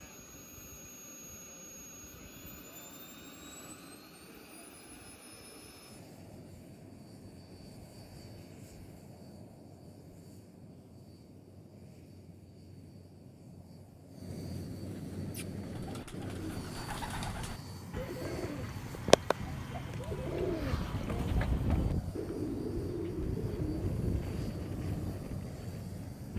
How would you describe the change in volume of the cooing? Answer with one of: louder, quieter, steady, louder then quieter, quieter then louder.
louder then quieter.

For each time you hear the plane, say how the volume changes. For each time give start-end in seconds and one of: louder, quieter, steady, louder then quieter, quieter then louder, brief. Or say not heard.
0.0-26.3 louder.